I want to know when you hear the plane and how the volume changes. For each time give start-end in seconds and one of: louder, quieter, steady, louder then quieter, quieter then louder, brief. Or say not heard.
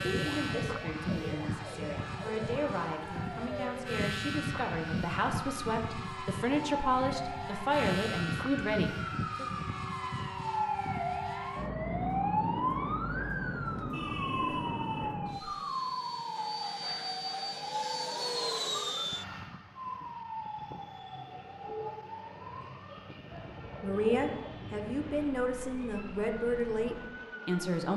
0.0-27.9 quieter.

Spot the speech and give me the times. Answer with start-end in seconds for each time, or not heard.
0.0-9.4, 23.8-27.9.